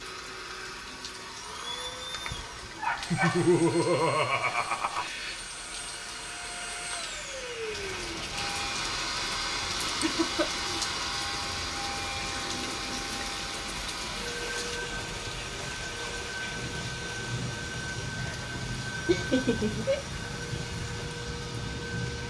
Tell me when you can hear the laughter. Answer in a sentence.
The laughter can be heard from 3.1 to 5.1 s, from 9.8 to 10.7 s and from 19.1 to 20.0 s.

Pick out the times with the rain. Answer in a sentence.
The rain can be heard from 0.0 to 22.2 s.